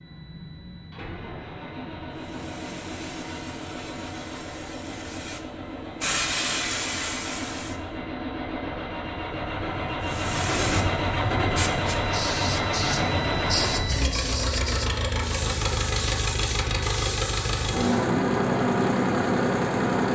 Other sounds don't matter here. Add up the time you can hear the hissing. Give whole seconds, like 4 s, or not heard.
14 s.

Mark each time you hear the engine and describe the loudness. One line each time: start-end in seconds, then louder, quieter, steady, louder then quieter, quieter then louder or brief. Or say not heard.
0.0-20.0 louder.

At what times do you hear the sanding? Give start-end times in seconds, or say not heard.
not heard.